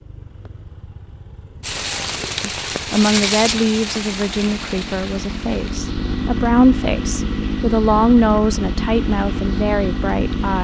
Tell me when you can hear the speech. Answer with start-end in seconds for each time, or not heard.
2.4-10.5.